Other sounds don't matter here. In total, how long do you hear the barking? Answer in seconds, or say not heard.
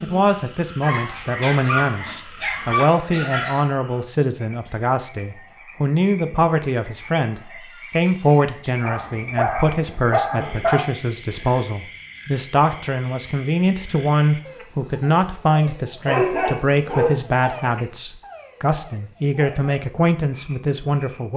6 s.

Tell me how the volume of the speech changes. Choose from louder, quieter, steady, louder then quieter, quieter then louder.
steady.